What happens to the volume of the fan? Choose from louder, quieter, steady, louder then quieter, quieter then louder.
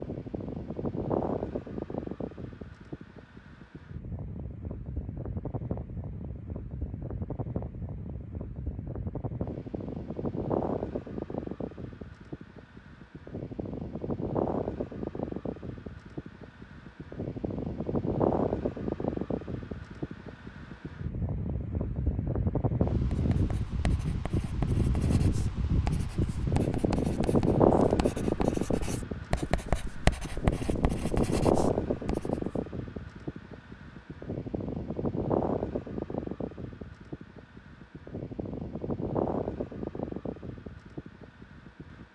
louder then quieter.